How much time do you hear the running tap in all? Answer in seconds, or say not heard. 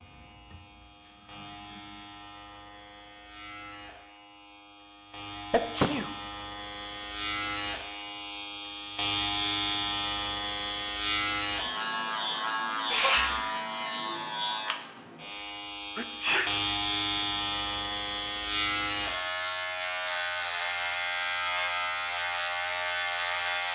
2 s.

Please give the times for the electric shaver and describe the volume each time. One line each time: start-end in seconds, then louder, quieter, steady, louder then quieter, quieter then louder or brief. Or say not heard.
0.0-23.7 louder.